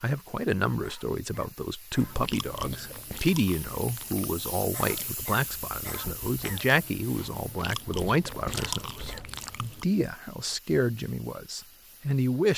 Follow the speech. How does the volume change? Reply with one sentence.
The loudness of the speech stays about the same.